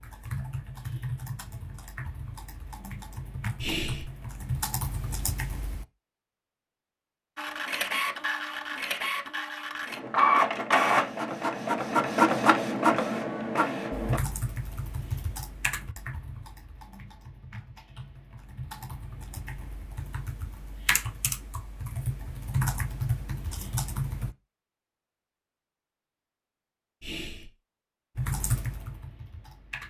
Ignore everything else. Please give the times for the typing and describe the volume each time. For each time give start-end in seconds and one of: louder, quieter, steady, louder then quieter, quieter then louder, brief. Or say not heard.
0.0-5.8 quieter then louder
13.9-24.4 quieter then louder
28.1-29.8 brief.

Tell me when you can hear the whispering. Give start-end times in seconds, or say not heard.
3.5-4.0, 27.0-27.5.